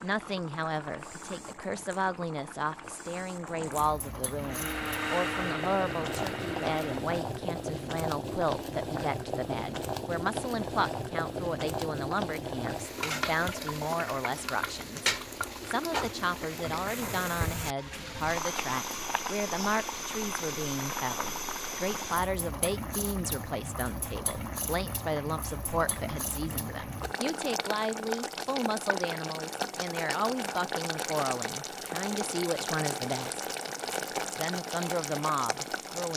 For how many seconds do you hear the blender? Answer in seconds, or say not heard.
3 s.